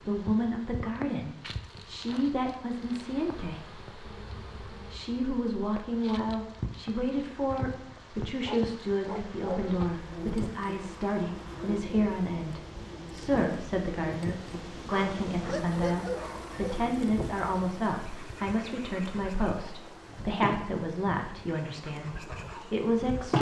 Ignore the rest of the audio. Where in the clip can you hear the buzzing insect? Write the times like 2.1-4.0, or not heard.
0.0-23.3.